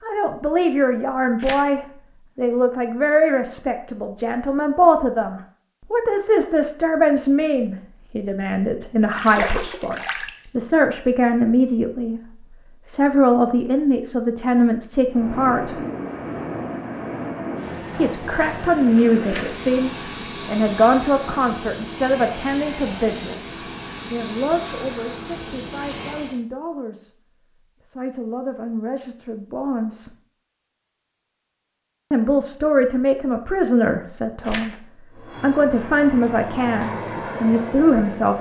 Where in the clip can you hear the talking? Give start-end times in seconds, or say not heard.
0.0-15.8, 17.9-27.1, 27.9-30.1, 32.1-38.3.